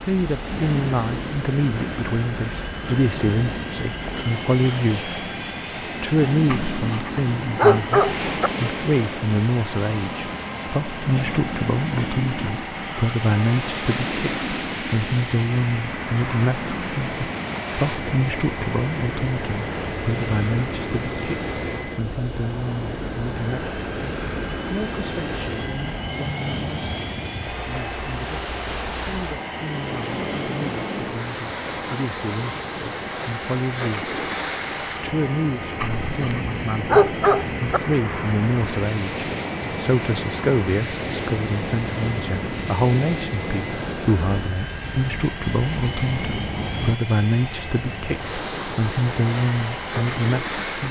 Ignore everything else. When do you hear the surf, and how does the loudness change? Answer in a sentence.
The surf can be heard from 0.0 to 50.8 s, at a steady volume.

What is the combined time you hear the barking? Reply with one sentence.
You can hear the barking for 4 seconds altogether.